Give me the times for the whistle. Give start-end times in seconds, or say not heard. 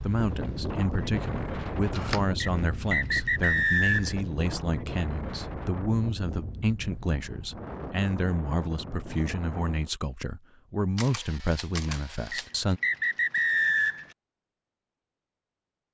2.4-4.2, 12.3-14.1.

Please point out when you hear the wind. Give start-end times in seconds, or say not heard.
0.0-9.9.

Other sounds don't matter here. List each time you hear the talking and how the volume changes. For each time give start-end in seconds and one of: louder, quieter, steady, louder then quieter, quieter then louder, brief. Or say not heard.
0.0-12.8 steady.